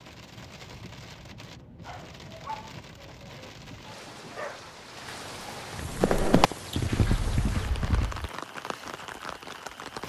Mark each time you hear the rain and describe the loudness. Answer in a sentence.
You can hear the rain from 0.0 to 10.0 s, getting louder.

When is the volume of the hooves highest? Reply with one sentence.
The loudest moment of the hooves is at 6 seconds.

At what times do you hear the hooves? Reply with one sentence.
The hooves can be heard from 5.9 to 8.3 s.